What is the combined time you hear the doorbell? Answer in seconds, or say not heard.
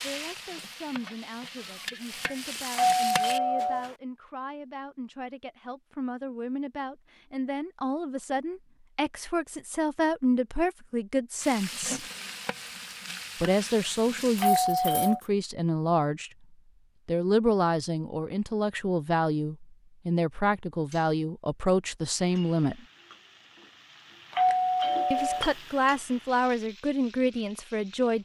3 s.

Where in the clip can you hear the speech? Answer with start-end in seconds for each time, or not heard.
0.0-12.1, 13.4-16.3, 17.1-22.8, 25.1-28.1.